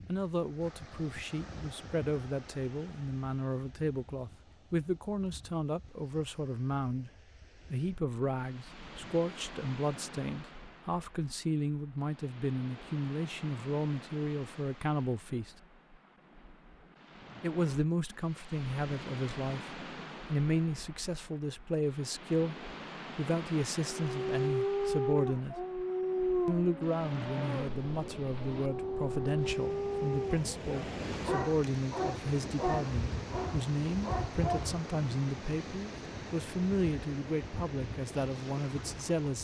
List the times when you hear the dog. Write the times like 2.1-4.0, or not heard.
23.8-34.7.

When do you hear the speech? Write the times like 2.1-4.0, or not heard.
0.1-7.1, 7.7-15.6, 17.4-22.6, 23.1-25.6, 26.4-39.3.